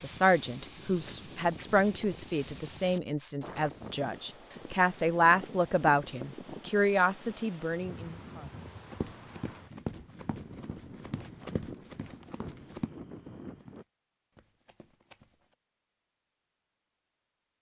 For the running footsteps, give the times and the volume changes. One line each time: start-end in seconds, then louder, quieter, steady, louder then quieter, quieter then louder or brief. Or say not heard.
8.9-15.6 quieter.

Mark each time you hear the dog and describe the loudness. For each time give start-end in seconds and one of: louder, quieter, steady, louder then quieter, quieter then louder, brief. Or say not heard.
not heard.